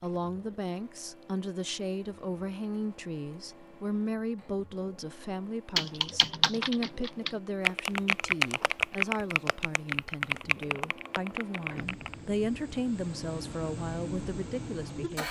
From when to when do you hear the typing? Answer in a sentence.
You can hear the typing from 5.8 to 12.2 s.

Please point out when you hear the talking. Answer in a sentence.
You can hear the talking from 0.0 to 15.2 s.